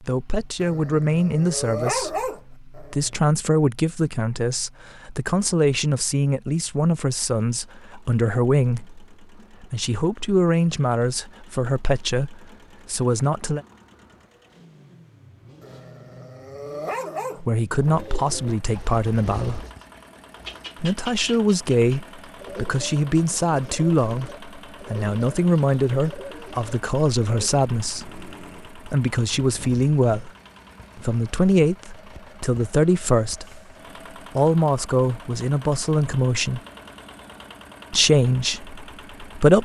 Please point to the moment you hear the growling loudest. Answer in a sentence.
The volume of the growling peaks at 2 seconds.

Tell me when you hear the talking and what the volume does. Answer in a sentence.
You can hear the talking from 0.0 to 13.6 s, at a steady volume; briefly from 17.4 to 19.6 s; from 20.8 to 30.3 s, at a steady volume; briefly from 30.9 to 33.6 s; briefly from 34.4 to 36.6 s; and briefly from 37.9 to 39.6 s.